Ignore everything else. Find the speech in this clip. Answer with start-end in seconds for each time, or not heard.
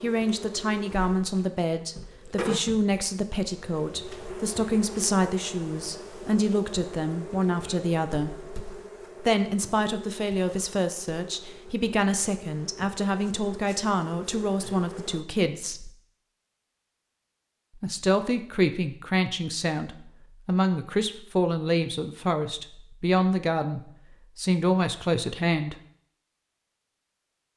0.0-8.4, 9.2-15.9, 17.8-25.8.